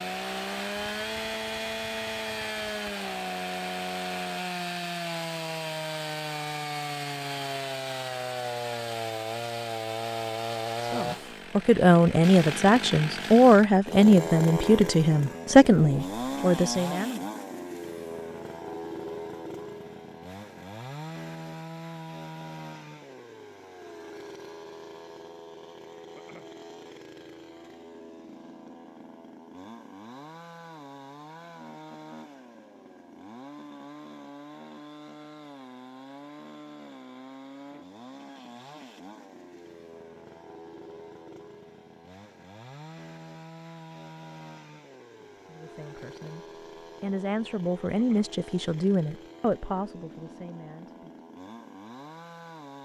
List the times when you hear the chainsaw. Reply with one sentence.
The chainsaw can be heard from 0.0 to 52.7 s.